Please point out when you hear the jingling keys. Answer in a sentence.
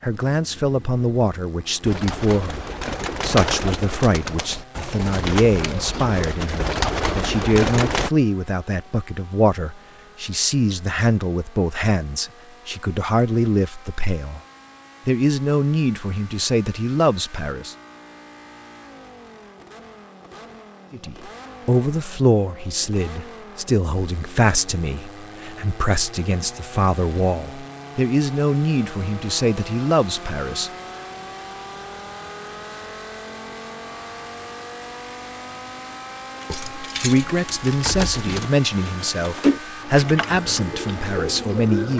You can hear the jingling keys from 36.5 to 38.5 s.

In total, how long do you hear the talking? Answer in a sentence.
The talking can be heard for 32 seconds in total.